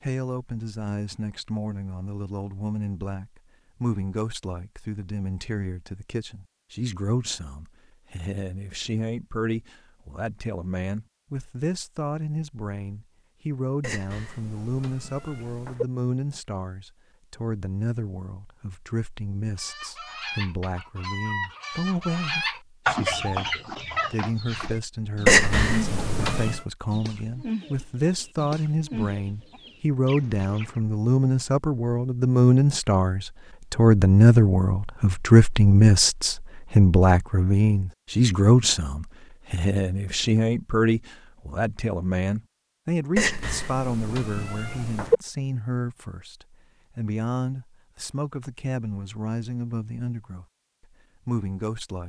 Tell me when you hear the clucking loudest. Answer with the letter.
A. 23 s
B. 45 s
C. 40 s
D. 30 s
A.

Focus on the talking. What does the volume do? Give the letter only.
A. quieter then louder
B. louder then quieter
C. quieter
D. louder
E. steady
B.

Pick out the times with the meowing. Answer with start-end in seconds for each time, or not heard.
13.8-15.8, 25.2-26.6, 43.1-45.2.